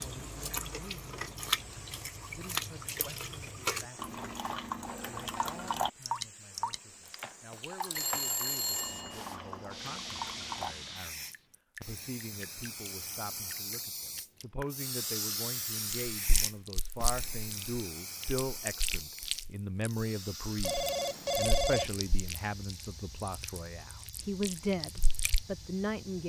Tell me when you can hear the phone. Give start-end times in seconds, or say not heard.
8.0-9.2, 20.6-21.9.